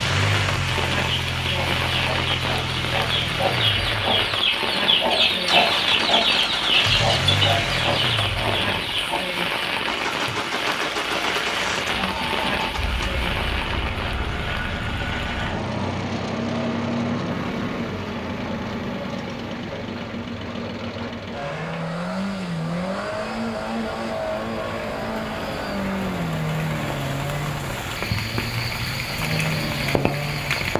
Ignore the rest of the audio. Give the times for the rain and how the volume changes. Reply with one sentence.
You can hear the rain from 0.0 to 30.7 s, getting quieter then louder.